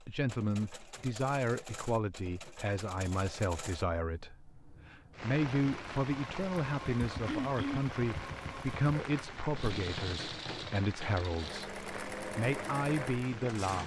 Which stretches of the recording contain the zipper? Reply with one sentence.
You can't hear the zipper here.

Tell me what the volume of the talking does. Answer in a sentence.
The loudness of the talking stays about the same.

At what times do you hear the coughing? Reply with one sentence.
You can hear the coughing from 7.2 to 7.8 s.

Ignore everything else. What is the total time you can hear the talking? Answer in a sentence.
You can hear the talking for 14 seconds altogether.